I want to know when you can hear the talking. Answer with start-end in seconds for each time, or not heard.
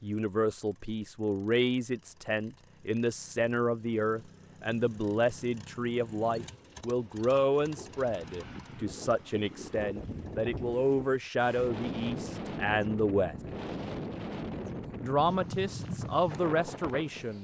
0.0-13.3, 15.0-17.3.